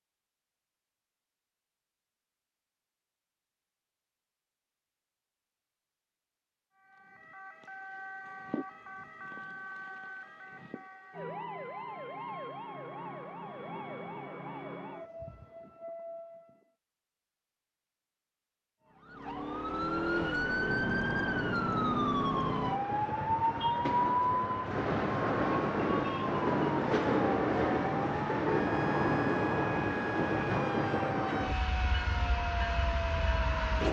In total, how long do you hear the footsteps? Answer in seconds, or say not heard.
not heard.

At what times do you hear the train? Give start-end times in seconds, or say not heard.
20.1-33.8.